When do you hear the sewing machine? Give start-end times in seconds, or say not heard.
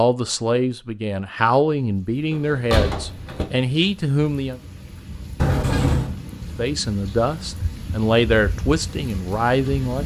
not heard.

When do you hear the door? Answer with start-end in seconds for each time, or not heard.
2.3-3.5, 5.3-6.2.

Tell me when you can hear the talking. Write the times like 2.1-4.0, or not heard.
0.0-4.6, 6.5-10.0.